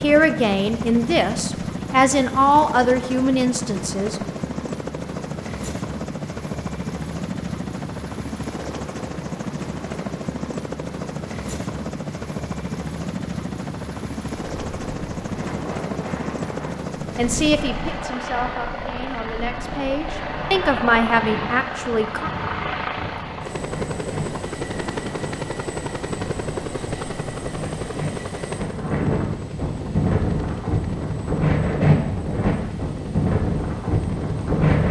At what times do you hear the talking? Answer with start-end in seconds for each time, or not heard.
0.0-4.2, 17.1-22.3.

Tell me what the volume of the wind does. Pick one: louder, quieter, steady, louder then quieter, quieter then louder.
louder.